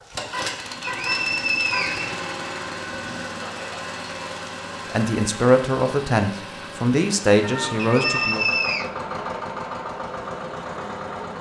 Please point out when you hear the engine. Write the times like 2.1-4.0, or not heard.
0.0-11.3.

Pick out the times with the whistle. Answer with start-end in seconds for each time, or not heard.
0.8-2.1, 7.8-8.9.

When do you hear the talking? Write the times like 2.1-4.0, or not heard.
4.9-8.4.